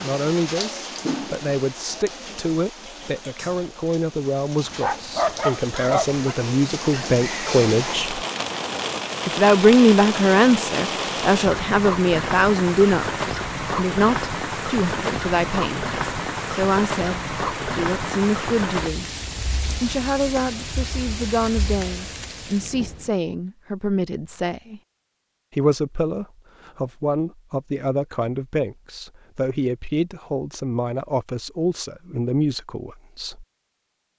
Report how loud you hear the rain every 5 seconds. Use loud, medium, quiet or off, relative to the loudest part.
medium, loud, loud, loud, medium, off, off.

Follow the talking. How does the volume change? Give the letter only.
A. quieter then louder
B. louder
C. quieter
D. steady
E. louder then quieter
E.